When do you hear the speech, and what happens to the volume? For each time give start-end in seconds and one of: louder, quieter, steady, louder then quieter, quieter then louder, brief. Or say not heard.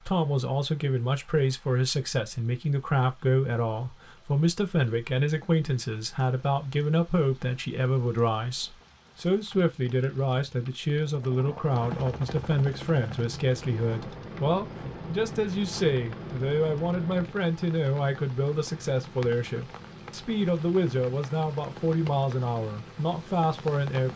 0.0-24.1 steady.